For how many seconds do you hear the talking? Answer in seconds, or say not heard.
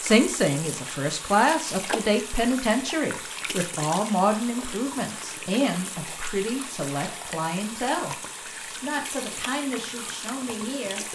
10 s.